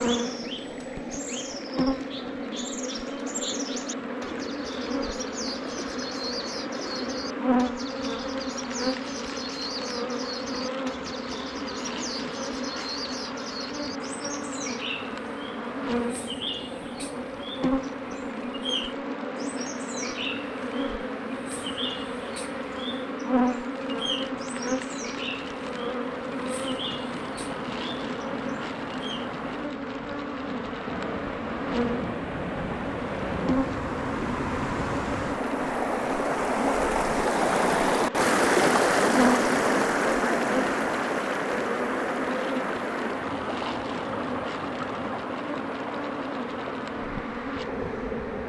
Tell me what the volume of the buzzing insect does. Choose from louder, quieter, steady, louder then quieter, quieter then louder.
steady.